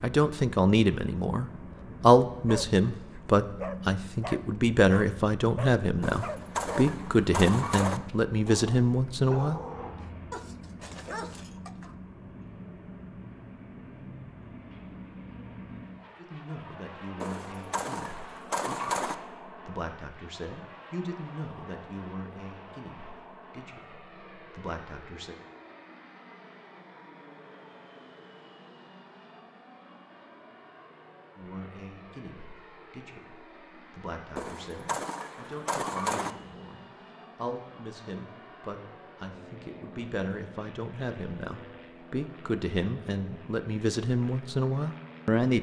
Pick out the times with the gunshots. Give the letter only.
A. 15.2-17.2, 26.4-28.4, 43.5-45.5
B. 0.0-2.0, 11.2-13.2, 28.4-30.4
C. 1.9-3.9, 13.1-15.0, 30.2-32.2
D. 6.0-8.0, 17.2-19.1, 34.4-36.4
D.